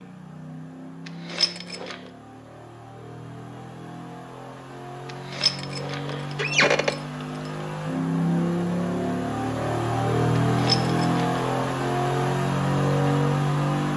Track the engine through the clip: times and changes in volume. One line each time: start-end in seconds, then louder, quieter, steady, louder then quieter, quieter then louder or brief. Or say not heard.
0.0-13.9 louder.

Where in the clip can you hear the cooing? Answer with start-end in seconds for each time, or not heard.
not heard.